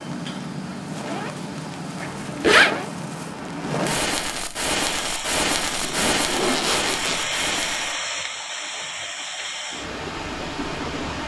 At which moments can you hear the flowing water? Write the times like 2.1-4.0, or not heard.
4.7-11.2.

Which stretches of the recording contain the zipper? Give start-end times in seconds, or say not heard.
2.0-2.8, 5.8-7.3.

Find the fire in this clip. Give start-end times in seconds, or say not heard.
0.0-8.0.